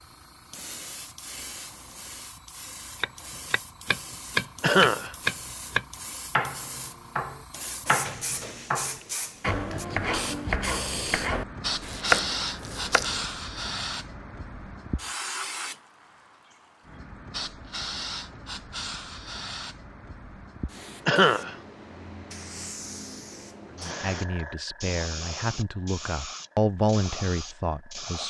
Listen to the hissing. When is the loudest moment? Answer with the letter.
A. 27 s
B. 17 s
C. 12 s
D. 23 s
C.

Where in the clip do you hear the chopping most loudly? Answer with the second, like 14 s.
12 s.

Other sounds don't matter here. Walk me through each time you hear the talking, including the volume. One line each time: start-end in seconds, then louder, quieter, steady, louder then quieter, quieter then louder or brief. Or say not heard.
23.8-28.2 louder then quieter.